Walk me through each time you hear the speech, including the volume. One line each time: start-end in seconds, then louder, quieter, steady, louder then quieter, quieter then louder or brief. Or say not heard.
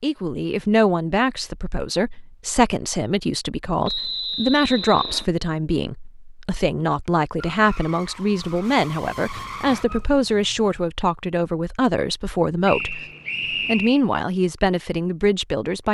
0.0-13.1 steady
13.7-15.8 brief.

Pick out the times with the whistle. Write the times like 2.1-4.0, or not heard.
3.9-5.2, 12.7-14.0.